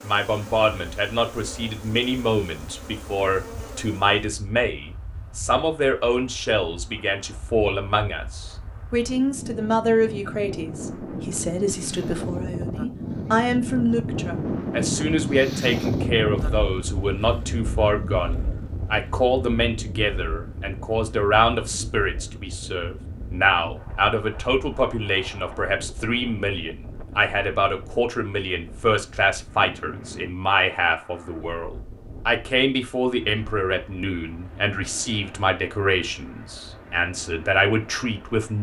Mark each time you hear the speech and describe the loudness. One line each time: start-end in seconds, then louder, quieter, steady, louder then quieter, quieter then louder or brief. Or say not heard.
0.0-38.5 steady.